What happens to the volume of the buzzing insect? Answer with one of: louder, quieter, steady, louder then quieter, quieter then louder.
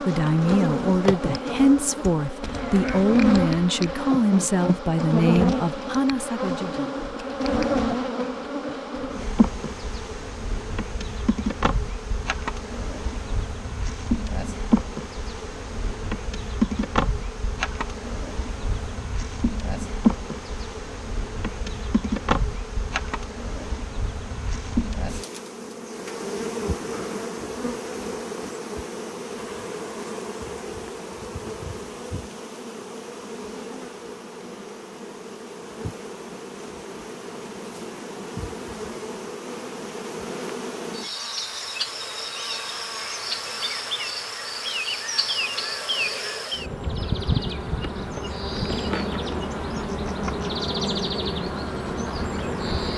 quieter then louder.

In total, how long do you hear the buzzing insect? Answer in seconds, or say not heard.
53 s.